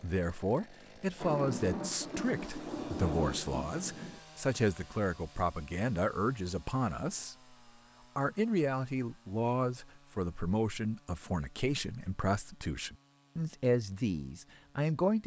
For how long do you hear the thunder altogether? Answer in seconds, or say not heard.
3 s.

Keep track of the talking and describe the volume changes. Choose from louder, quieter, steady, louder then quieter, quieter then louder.
steady.